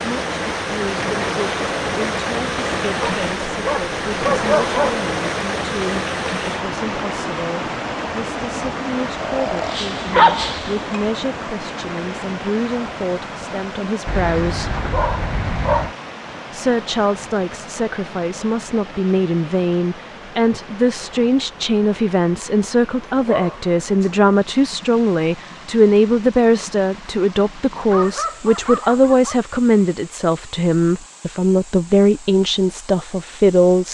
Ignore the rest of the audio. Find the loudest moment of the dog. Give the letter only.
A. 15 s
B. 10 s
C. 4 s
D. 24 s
B.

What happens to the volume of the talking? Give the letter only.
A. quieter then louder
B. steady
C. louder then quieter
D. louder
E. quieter
D.